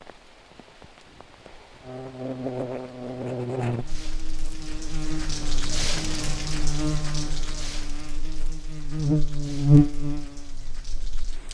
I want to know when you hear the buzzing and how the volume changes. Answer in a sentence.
The buzzing can be heard from 1.8 to 11.5 s, getting quieter then louder.